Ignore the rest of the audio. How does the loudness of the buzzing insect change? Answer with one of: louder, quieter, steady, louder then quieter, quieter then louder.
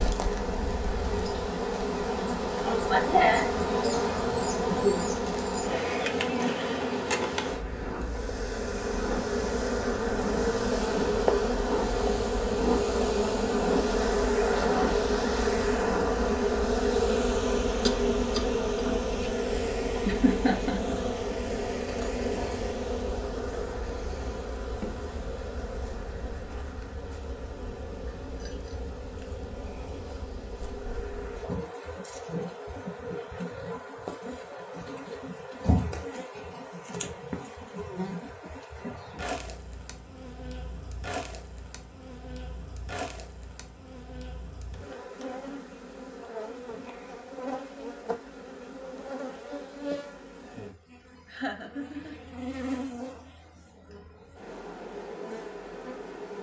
quieter.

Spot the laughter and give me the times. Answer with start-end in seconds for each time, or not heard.
2.6-5.0, 20.1-21.0, 51.2-52.1.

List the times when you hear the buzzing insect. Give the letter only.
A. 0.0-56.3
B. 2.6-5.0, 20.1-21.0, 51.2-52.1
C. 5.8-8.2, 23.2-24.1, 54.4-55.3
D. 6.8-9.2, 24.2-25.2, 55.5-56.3
A.